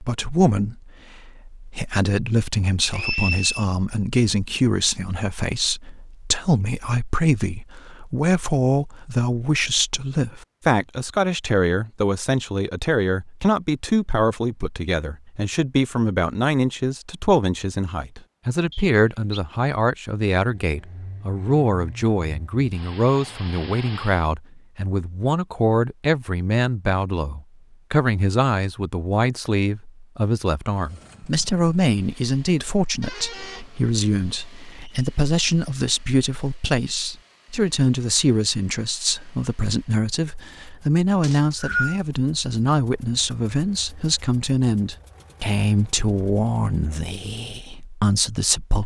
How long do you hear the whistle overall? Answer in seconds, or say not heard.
2 s.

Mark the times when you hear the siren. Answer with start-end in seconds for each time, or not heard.
not heard.